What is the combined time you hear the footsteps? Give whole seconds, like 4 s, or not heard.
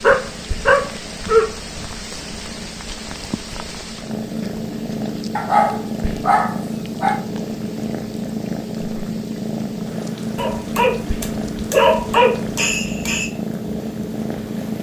not heard.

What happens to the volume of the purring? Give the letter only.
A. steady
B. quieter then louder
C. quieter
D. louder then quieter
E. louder
E.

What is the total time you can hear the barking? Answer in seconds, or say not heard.
6 s.